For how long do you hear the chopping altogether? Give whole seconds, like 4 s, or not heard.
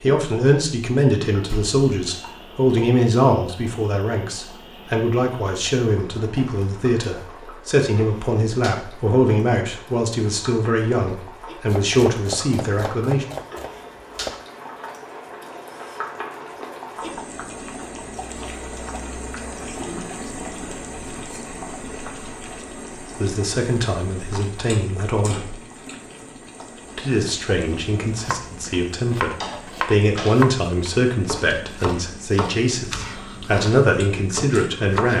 10 s.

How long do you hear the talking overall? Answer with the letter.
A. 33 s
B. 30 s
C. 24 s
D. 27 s
C.